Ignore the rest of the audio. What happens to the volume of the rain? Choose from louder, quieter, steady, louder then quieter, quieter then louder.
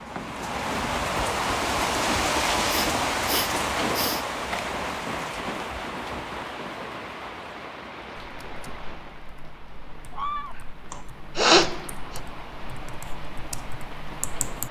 quieter.